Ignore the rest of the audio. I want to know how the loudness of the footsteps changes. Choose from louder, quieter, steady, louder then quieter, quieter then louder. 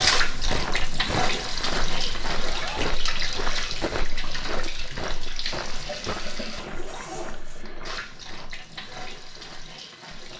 quieter.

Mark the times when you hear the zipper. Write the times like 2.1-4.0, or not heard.
2.3-2.9, 6.2-7.7.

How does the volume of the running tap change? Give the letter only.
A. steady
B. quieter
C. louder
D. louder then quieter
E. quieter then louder
B.